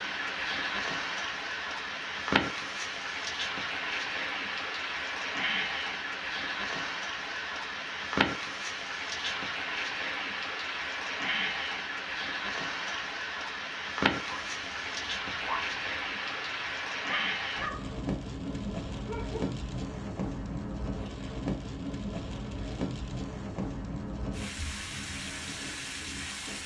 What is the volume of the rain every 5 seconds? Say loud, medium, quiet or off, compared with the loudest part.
loud, loud, loud, loud, loud, medium.